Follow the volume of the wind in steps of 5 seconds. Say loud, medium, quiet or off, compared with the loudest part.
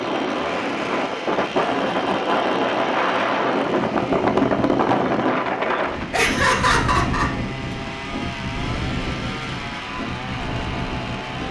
loud, medium, medium.